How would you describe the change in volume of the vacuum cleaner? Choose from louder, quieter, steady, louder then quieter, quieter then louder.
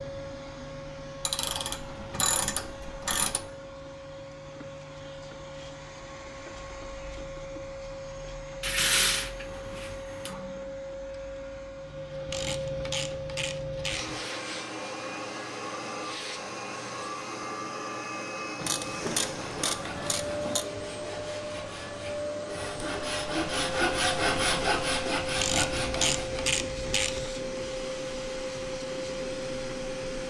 louder.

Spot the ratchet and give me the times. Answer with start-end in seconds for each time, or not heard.
1.2-3.5, 8.6-10.3, 12.2-14.2, 18.6-20.6, 25.4-27.3.